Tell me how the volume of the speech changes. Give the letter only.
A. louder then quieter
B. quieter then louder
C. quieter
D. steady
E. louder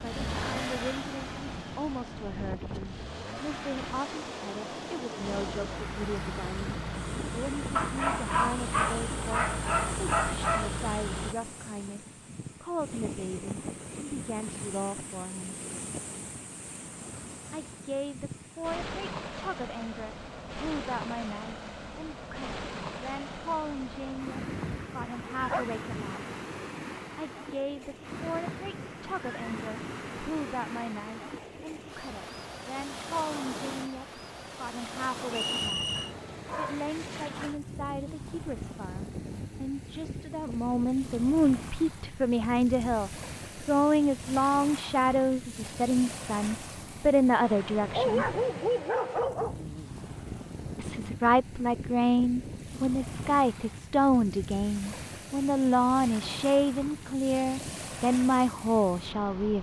E.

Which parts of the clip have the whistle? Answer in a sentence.
You can hear the whistle from 35.3 to 36.1 s.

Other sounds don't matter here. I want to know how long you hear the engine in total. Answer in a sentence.
You can hear the engine for 11 seconds altogether.